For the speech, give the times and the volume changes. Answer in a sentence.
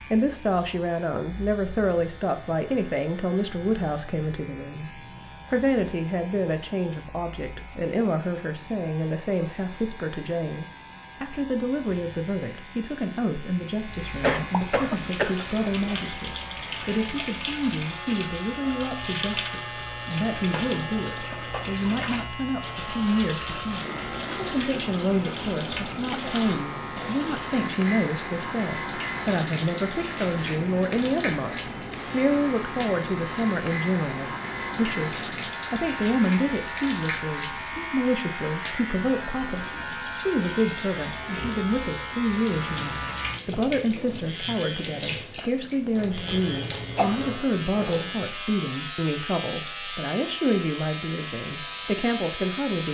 The speech can be heard from 0.1 to 52.8 s, at a steady volume.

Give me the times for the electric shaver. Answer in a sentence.
You can hear the electric shaver from 0.0 to 52.8 s.